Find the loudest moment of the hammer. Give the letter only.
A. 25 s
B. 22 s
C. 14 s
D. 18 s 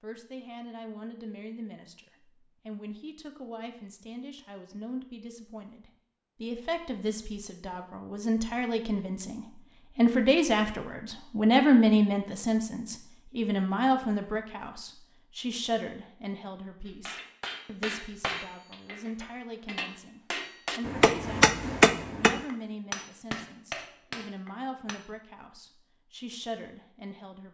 B.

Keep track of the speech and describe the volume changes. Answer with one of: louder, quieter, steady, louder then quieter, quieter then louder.
louder then quieter.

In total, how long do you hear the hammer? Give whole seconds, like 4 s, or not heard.
8 s.